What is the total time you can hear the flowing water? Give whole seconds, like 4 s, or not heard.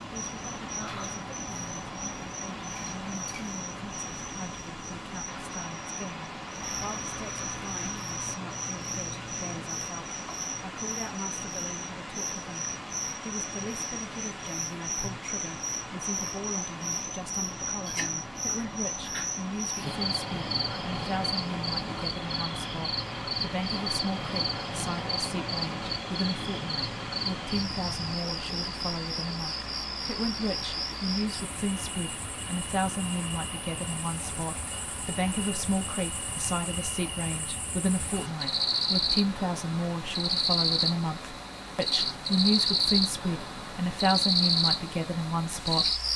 46 s.